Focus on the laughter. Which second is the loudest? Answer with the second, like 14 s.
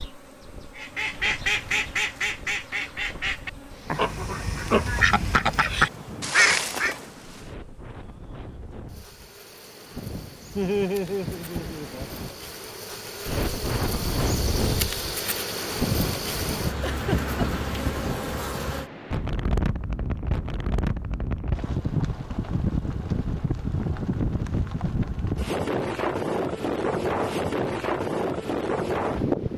11 s.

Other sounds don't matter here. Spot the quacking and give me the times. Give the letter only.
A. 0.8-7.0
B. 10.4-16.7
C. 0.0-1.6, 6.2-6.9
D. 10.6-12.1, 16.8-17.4
A.